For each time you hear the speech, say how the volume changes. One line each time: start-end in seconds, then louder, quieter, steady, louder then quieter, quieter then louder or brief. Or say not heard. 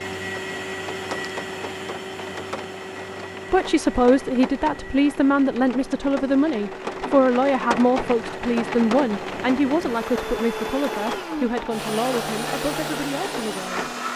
3.5-13.9 quieter.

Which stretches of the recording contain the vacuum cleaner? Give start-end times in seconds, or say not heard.
0.0-14.1.